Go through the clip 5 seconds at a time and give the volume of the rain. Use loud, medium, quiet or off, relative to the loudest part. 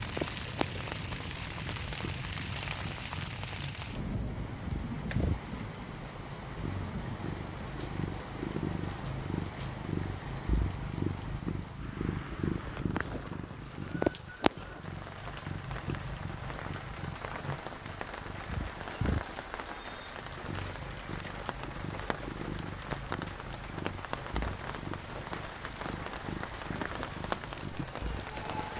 loud, loud, medium, loud, loud, loud.